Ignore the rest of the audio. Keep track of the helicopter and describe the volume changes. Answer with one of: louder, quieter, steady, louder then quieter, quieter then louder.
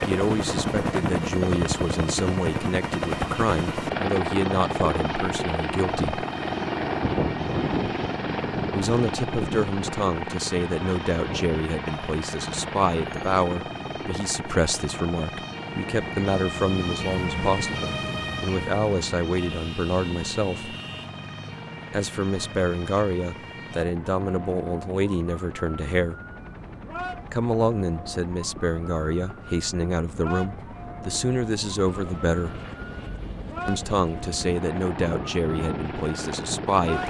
quieter then louder.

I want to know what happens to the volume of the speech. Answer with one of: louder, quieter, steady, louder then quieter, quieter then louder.
steady.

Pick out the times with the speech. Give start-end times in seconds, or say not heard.
0.1-6.2, 8.7-20.8, 21.9-26.1, 27.3-32.5, 33.6-37.0.